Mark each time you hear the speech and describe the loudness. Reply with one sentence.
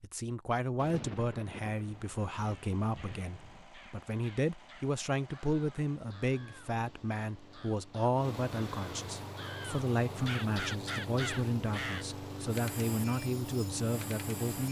The speech can be heard from 0.0 to 14.6 s, at a steady volume.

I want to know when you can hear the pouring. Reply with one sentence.
You can't hear the pouring here.